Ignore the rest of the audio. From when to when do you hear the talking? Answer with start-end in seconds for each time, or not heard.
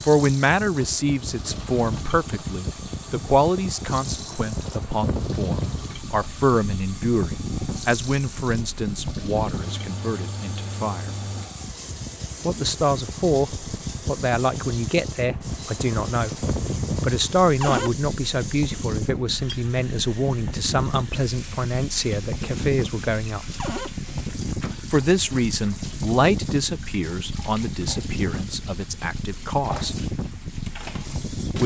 0.0-11.1, 12.4-16.4, 17.0-23.4, 24.9-29.9.